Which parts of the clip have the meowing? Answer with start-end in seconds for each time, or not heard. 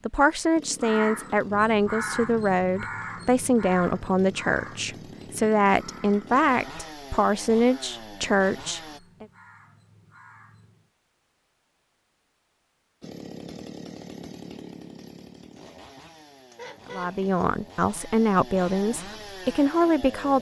not heard.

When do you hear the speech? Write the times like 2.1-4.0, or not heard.
0.1-9.2, 16.9-20.3.